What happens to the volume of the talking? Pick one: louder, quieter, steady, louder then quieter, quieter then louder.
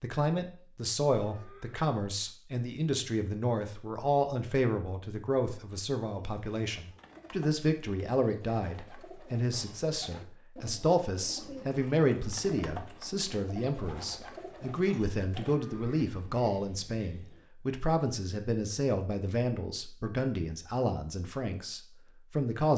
steady.